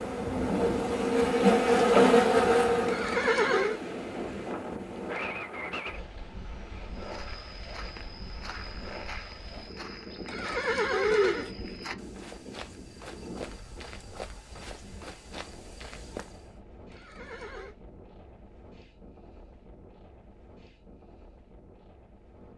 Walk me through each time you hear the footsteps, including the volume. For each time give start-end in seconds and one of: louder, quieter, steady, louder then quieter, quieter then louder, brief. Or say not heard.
6.9-16.6 steady.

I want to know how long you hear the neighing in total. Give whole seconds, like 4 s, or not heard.
3 s.